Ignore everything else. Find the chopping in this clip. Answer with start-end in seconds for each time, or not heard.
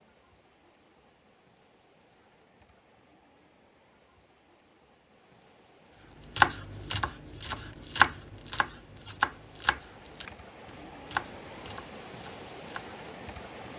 6.3-12.8.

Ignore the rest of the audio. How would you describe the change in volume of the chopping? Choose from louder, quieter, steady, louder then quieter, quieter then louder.
louder then quieter.